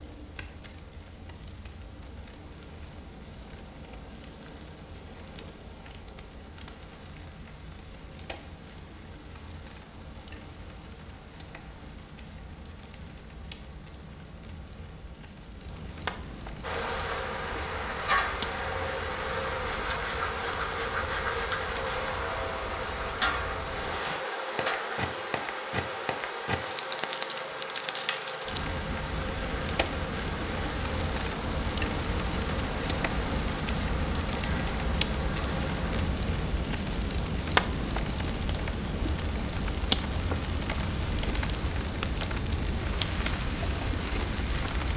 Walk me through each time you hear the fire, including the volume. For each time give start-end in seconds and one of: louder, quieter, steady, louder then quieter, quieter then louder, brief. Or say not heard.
0.0-44.9 louder.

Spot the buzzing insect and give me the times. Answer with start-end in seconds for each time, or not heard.
16.6-36.0.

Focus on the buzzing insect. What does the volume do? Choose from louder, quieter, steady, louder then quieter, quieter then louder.
quieter.